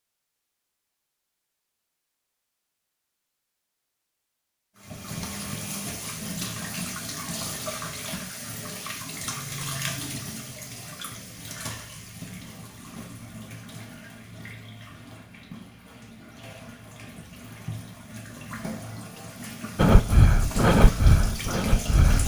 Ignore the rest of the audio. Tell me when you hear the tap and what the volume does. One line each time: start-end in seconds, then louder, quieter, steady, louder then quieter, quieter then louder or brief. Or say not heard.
4.8-22.2 quieter then louder.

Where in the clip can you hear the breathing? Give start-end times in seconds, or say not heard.
19.8-22.2.